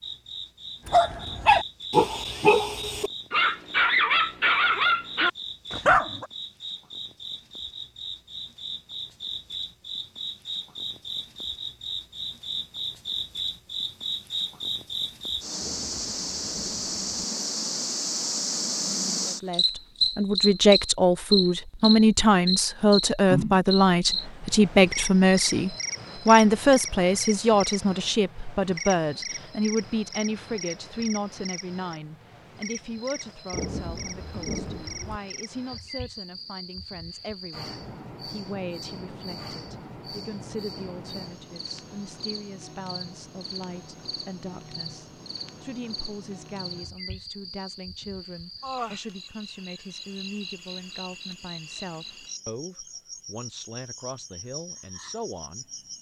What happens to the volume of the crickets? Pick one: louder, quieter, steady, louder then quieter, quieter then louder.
louder then quieter.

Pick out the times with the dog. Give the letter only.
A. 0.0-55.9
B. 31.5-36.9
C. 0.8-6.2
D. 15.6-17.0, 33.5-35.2
C.